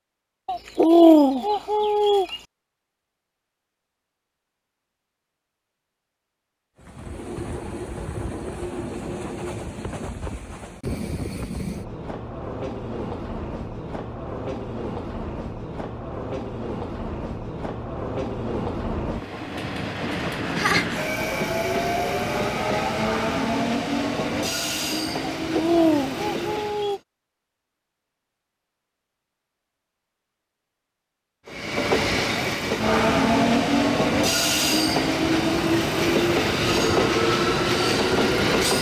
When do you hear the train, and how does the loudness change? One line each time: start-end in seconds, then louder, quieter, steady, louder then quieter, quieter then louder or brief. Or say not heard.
6.8-27.0 louder
31.4-38.7 steady.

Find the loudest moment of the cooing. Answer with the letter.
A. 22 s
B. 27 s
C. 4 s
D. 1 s
D.